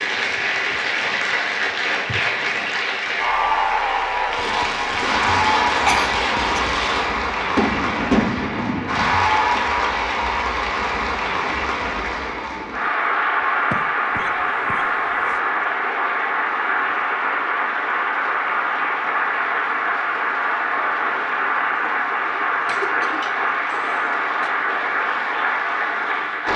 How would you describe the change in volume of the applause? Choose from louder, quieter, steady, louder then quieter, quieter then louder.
steady.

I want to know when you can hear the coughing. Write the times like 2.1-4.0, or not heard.
5.8-6.6, 13.7-15.4, 22.6-24.5.